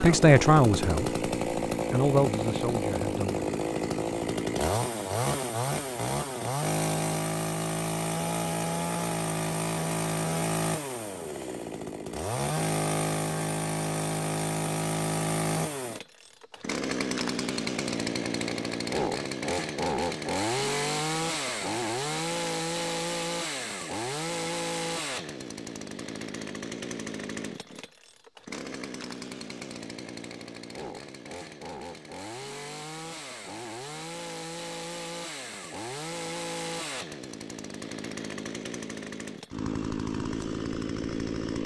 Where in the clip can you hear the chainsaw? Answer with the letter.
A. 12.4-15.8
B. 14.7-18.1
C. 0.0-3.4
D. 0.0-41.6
D.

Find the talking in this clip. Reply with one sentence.
The talking can be heard from 0.0 to 3.4 s.